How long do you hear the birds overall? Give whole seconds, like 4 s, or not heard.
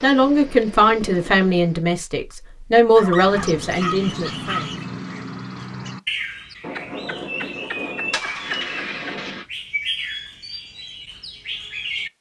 9 s.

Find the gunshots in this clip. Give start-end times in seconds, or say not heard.
6.6-9.4.